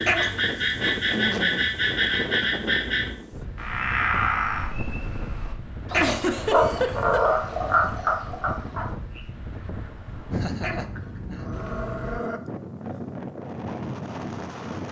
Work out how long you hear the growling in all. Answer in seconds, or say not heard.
3 s.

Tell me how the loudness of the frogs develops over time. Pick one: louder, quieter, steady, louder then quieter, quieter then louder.
steady.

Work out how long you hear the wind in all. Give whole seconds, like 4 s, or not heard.
15 s.